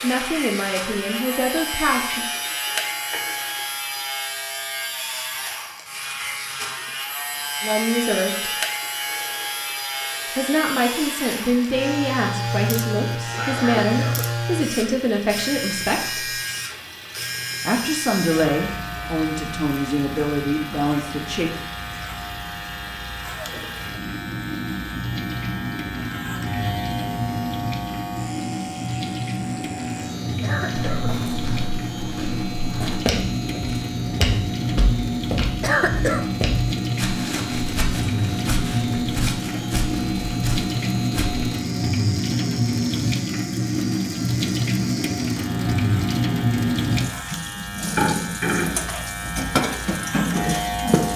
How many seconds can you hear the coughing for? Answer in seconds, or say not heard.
2 s.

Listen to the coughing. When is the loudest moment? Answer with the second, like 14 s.
36 s.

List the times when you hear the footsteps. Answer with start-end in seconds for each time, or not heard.
30.7-41.4.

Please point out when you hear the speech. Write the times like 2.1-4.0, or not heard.
0.0-2.2, 7.6-8.5, 10.3-16.3, 17.6-21.6.